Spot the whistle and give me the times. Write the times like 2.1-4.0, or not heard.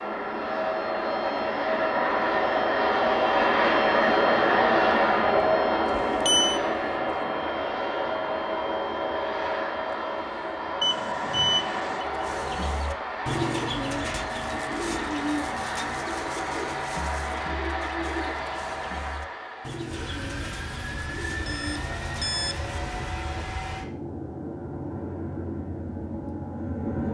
not heard.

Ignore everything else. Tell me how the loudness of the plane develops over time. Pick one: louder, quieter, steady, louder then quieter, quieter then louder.
quieter.